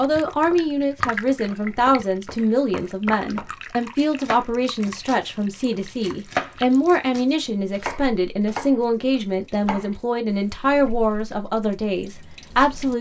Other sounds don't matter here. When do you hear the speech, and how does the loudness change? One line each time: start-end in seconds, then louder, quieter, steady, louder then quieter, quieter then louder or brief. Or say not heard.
0.0-12.9 steady.